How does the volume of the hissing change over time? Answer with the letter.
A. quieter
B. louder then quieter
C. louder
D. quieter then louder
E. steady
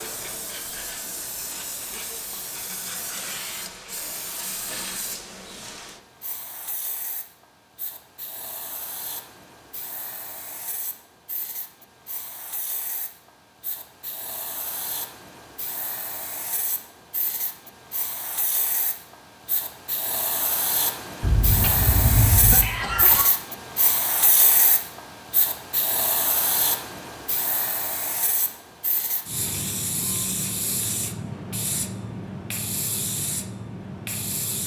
D.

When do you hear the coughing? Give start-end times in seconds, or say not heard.
21.2-23.2.